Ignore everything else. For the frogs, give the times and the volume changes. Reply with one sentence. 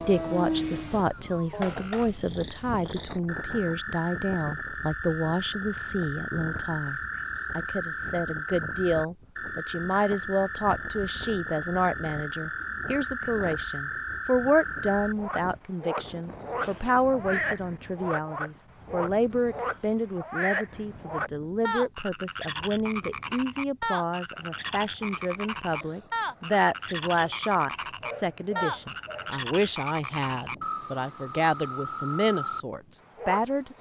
The frogs can be heard from 0.0 to 33.7 s, at a steady volume.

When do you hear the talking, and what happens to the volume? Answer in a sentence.
You can hear the talking from 0.1 to 33.7 s, at a steady volume.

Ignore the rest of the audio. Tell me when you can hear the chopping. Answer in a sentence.
You can't hear the chopping here.